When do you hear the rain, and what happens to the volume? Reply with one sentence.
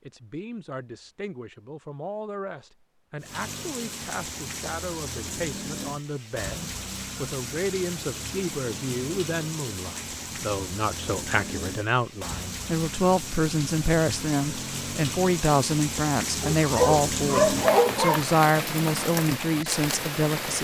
You can hear the rain from 3.2 to 20.5 s, getting louder.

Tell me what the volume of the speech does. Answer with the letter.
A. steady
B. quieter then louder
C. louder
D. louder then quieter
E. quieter
C.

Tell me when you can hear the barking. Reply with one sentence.
You can hear the barking from 16.4 to 18.2 s.